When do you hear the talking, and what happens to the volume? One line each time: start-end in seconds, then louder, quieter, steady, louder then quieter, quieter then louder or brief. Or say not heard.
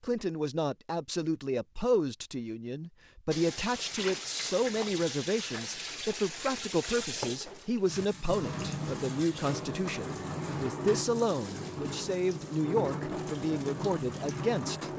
0.0-14.9 steady.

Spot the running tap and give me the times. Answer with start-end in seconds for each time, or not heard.
3.3-14.9.